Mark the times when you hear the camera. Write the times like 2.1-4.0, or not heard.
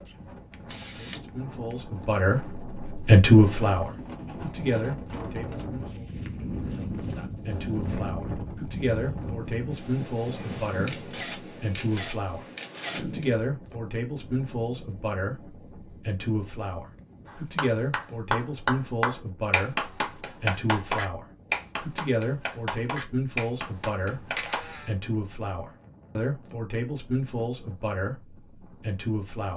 0.1-1.8, 10.8-13.3, 23.7-24.9.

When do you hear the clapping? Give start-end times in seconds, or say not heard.
17.2-24.6.